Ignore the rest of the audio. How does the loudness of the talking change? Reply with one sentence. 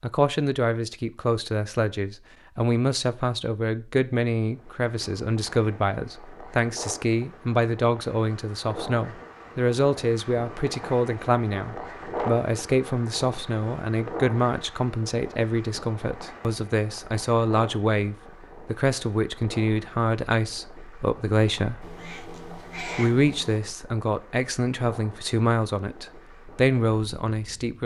The volume of the talking stays about the same.